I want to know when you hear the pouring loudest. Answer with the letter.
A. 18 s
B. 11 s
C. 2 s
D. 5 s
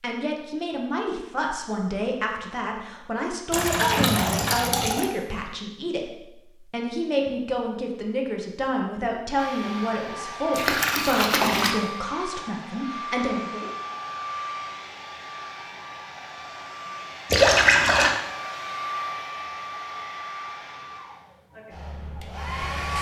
A.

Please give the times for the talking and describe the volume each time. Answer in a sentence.
You can hear the talking from 0.0 to 13.8 s, at a steady volume.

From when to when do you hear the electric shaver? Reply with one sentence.
You can't hear the electric shaver here.